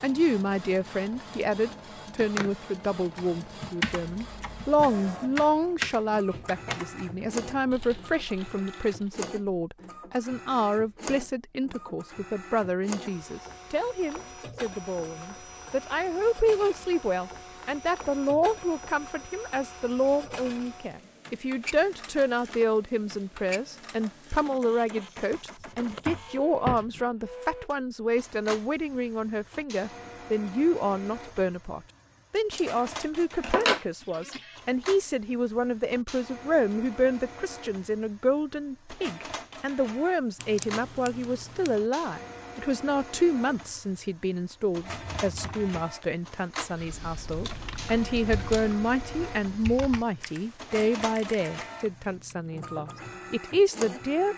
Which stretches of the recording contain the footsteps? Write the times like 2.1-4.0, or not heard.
not heard.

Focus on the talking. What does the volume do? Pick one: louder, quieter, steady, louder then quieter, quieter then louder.
steady.